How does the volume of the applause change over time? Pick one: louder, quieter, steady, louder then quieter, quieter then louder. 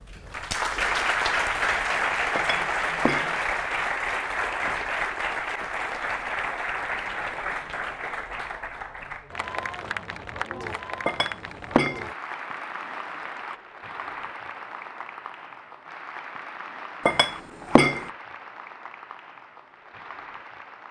quieter.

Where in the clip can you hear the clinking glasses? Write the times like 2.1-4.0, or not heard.
2.4-3.4, 11.1-12.1, 17.1-18.1.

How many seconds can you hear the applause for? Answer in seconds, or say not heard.
21 s.